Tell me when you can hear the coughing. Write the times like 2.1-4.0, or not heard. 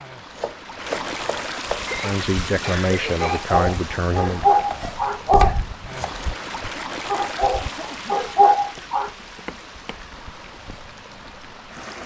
1.9-3.4, 7.6-8.3.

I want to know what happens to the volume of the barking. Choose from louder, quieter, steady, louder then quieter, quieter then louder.
quieter then louder.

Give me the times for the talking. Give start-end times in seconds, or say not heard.
2.0-4.5.